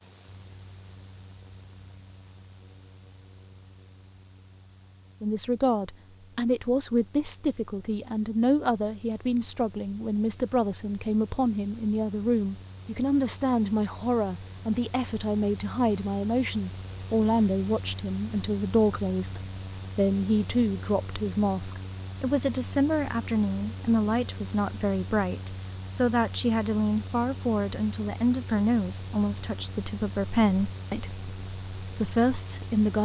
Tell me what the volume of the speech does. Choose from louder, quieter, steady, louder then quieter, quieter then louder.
steady.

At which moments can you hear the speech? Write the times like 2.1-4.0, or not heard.
5.2-33.0.